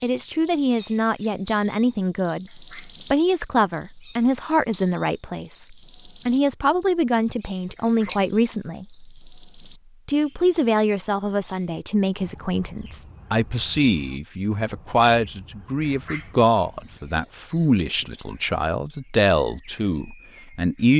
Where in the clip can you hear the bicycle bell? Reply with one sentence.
You can hear the bicycle bell from 8.1 to 8.7 s.